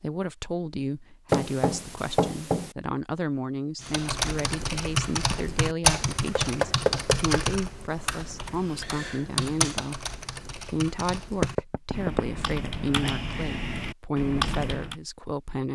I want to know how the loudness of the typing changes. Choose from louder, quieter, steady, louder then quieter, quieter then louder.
quieter then louder.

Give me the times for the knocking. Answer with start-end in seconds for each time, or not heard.
1.3-2.8, 6.3-7.5, 11.4-12.2.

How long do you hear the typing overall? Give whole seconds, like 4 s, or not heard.
11 s.